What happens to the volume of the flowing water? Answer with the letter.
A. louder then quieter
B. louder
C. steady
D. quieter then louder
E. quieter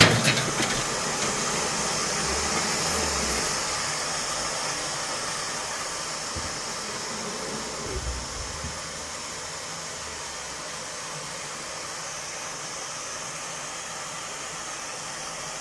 E.